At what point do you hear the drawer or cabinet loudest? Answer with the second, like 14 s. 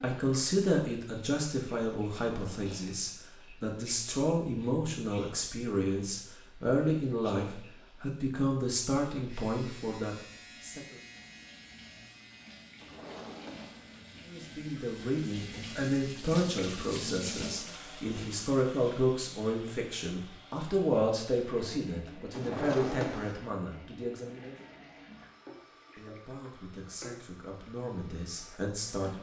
23 s.